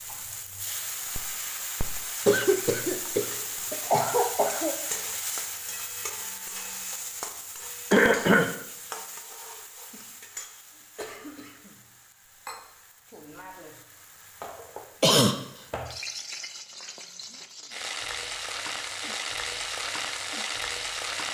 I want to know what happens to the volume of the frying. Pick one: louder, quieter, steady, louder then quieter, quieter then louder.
quieter then louder.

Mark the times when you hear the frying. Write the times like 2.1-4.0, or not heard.
0.0-21.2.